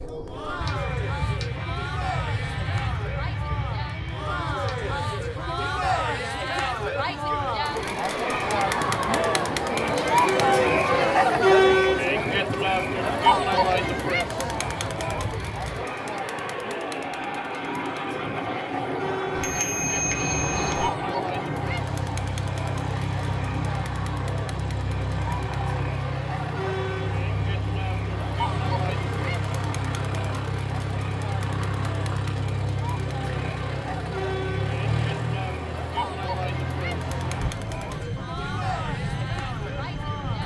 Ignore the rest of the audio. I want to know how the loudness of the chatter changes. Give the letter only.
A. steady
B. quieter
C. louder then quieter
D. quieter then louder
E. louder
C.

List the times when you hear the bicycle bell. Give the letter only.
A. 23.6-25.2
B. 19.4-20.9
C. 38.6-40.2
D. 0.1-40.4
B.